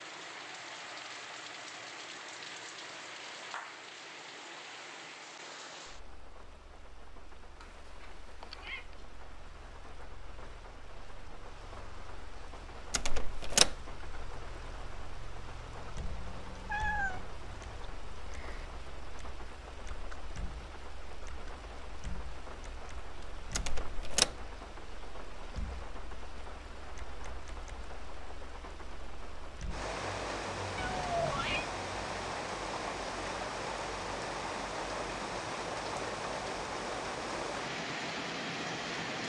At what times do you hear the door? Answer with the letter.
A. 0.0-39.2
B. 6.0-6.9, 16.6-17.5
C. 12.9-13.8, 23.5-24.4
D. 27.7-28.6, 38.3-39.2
C.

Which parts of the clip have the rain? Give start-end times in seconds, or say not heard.
0.0-39.2.